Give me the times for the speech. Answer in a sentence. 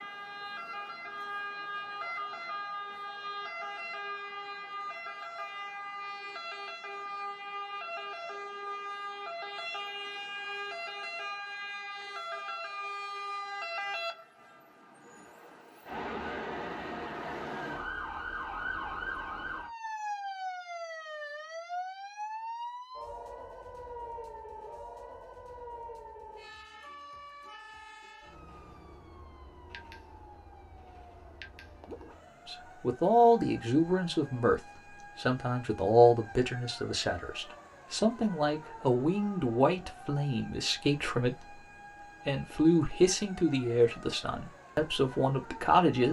The speech can be heard from 32.5 to 46.0 s.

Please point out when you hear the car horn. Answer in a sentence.
The car horn can't be heard in this clip.